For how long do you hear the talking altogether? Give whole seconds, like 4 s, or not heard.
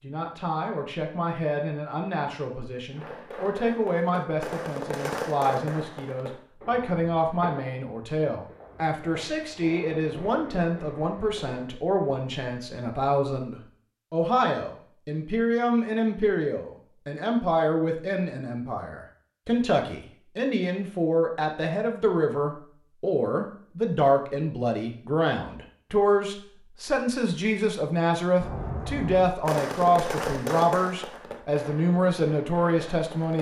33 s.